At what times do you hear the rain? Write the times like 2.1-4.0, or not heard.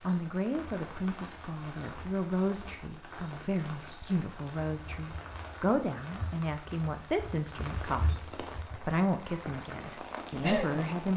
0.0-11.1.